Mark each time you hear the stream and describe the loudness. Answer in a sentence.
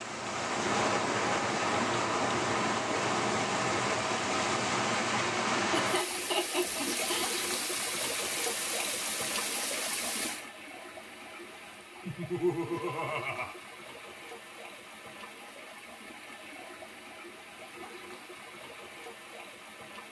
You can hear the stream from 0.0 to 20.0 s, getting quieter.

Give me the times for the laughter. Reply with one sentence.
The laughter can be heard from 5.7 to 7.3 s and from 12.1 to 13.6 s.